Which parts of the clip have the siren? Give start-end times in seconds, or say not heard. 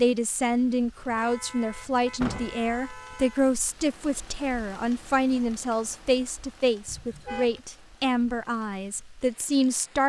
not heard.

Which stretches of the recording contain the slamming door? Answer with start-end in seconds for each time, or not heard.
2.2-2.6.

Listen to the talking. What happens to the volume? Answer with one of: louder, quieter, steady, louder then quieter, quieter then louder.
steady.